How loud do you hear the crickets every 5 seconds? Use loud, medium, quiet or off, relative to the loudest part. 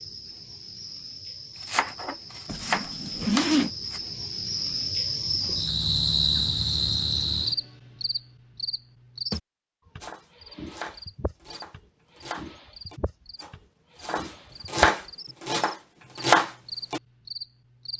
medium, loud, quiet, quiet.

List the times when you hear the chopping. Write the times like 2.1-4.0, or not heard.
1.6-4.0, 10.0-17.0.